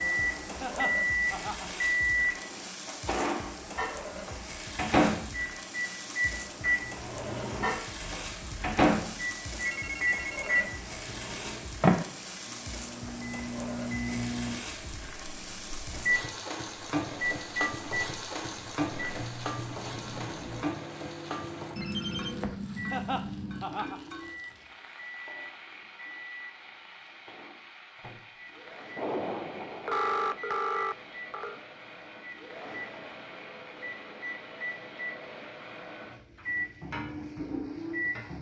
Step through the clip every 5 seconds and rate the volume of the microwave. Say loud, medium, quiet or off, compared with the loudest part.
loud, loud, loud, medium, quiet, quiet, quiet, medium.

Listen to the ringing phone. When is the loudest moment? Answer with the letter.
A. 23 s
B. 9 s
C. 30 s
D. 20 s
C.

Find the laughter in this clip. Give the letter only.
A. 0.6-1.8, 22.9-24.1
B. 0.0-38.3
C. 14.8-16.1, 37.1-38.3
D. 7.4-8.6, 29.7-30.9
A.